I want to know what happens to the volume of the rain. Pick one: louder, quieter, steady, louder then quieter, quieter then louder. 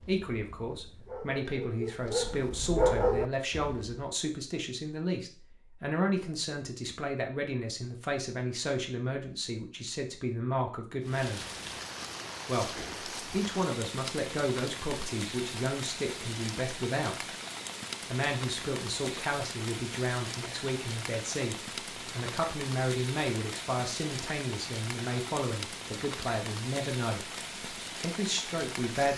steady.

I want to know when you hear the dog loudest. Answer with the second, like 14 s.
3 s.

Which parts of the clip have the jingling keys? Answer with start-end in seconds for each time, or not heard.
not heard.